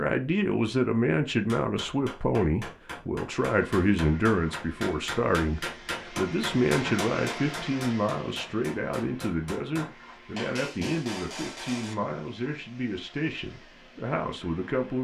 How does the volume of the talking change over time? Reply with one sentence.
The volume of the talking goes down.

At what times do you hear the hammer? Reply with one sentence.
The hammer can be heard from 1.4 to 11.9 s.